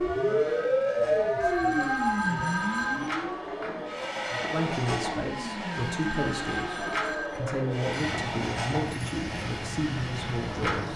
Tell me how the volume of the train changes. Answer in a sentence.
The volume of the train goes up.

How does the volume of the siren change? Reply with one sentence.
The volume of the siren goes down.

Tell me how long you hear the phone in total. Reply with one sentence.
The phone can be heard for 3 seconds in total.